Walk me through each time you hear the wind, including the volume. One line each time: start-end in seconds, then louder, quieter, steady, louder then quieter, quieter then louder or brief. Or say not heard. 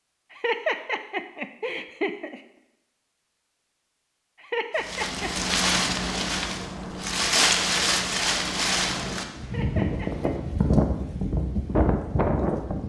4.8-12.8 steady.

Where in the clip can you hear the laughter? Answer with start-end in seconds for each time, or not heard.
0.3-2.4, 4.4-5.5, 9.4-10.3.